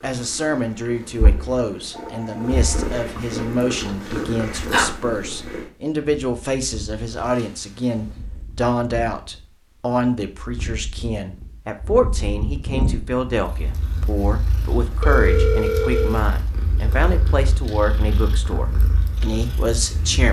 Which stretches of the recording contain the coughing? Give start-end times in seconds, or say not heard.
not heard.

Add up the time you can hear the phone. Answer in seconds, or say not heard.
4 s.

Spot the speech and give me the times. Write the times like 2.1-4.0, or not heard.
0.0-20.2.